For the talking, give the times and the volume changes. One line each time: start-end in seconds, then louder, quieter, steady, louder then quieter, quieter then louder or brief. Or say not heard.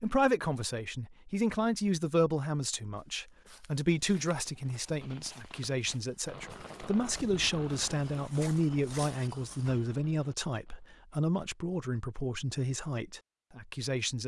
0.0-14.2 steady.